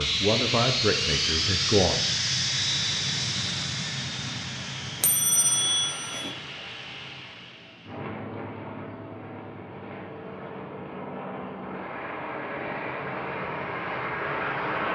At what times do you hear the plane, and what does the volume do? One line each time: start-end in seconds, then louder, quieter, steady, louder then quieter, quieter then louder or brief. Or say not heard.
0.0-14.9 quieter then louder.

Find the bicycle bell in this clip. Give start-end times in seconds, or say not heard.
5.0-6.3.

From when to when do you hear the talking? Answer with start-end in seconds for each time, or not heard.
0.0-2.1.